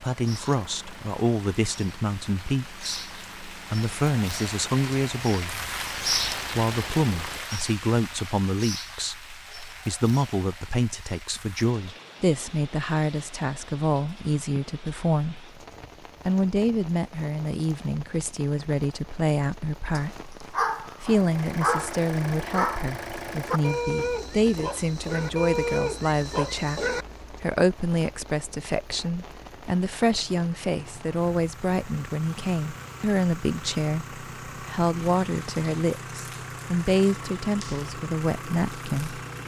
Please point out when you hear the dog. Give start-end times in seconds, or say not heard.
19.9-27.1.